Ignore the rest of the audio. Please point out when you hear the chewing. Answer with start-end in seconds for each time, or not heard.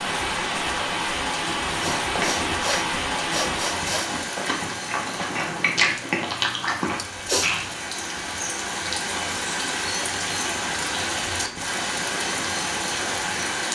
1.6-7.9.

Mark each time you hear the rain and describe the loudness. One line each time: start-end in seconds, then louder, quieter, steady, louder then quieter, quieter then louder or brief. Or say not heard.
0.0-13.7 quieter then louder.